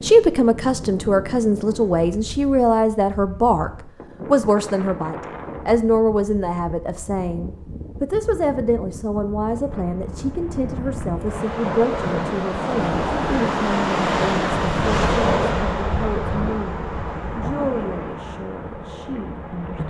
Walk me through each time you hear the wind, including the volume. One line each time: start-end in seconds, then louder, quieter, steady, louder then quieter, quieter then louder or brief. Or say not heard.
0.0-19.8 louder then quieter.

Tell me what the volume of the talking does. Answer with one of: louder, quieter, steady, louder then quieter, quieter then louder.
quieter.